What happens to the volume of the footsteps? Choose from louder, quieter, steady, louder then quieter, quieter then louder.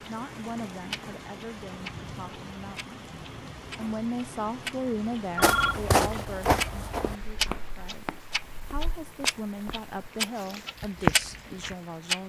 quieter then louder.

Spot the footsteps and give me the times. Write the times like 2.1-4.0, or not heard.
5.4-11.8.